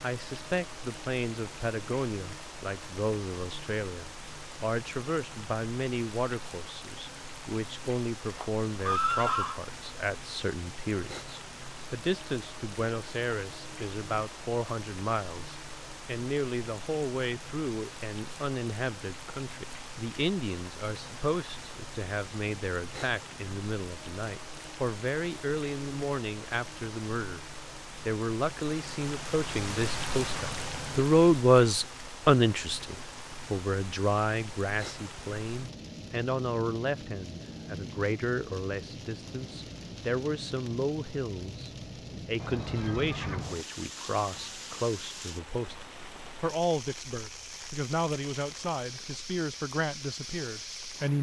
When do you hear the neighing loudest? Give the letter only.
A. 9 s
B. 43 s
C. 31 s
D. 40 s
A.